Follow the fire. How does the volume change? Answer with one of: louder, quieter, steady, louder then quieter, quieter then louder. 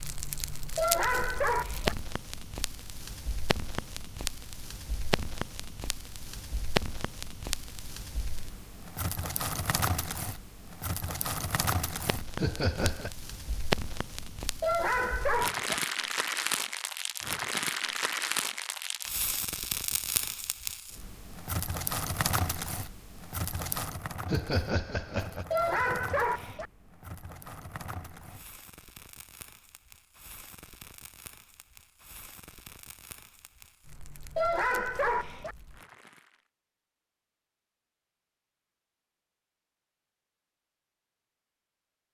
quieter.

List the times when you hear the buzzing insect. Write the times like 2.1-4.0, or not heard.
not heard.